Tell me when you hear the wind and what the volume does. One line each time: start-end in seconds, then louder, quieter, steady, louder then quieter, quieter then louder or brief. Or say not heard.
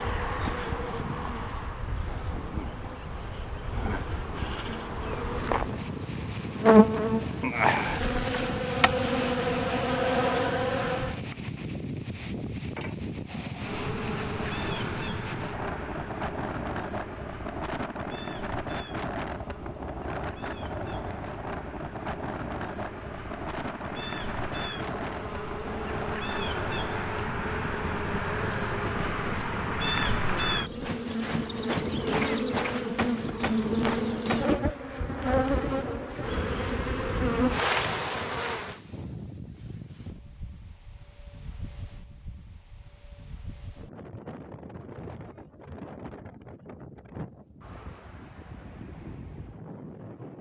0.0-50.3 quieter.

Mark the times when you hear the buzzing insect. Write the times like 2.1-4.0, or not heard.
0.0-11.2, 13.6-38.8.